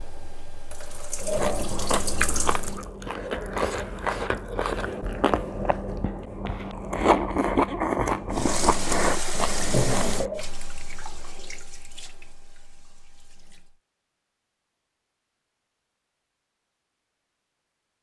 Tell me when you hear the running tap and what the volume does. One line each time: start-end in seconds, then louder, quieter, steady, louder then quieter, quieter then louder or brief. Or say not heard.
0.0-2.8 brief
8.3-13.8 quieter.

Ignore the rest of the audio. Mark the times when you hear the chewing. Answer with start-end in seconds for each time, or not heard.
1.2-10.4.